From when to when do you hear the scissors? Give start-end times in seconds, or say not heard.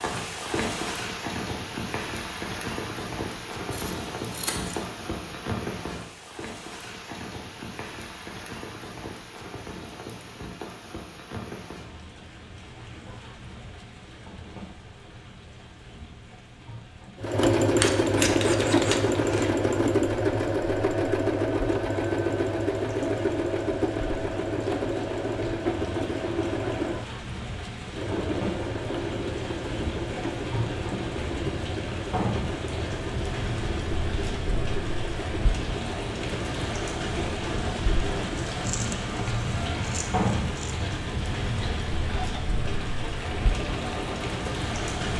3.7-4.8, 17.8-19.6, 38.5-40.8.